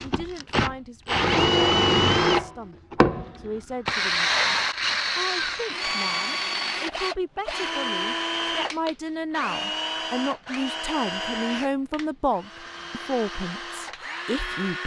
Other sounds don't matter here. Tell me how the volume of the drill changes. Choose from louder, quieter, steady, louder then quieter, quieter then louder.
quieter.